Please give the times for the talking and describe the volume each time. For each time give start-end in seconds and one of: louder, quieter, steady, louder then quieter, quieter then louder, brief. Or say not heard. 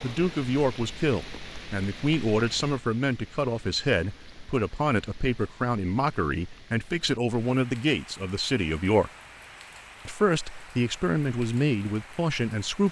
0.0-9.1 steady
10.1-12.8 brief.